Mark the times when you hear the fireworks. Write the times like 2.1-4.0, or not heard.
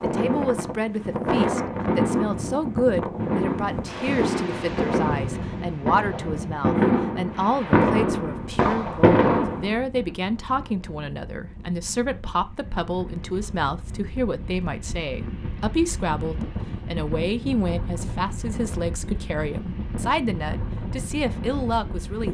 0.0-9.7.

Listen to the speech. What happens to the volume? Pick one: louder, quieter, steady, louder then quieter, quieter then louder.
steady.